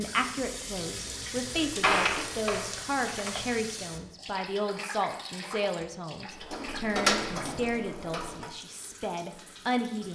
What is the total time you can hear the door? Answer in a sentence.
You can hear the door for 4 seconds altogether.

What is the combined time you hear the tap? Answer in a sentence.
The tap can be heard for 10 seconds in total.